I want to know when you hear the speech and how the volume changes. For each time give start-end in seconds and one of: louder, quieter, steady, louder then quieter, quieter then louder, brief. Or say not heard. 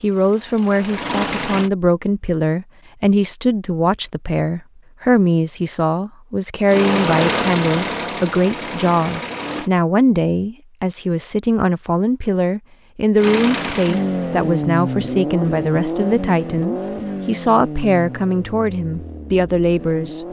0.0-20.2 steady.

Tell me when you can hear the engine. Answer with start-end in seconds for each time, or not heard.
0.0-1.7, 6.7-9.7, 13.2-20.2.